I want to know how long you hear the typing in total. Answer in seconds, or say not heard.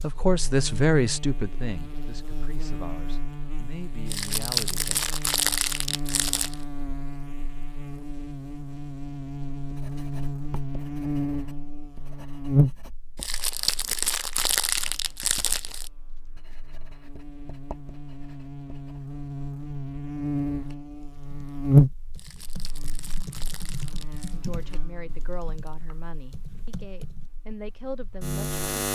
7 s.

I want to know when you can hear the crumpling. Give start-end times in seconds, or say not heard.
4.0-6.5, 13.2-15.9, 22.1-24.4.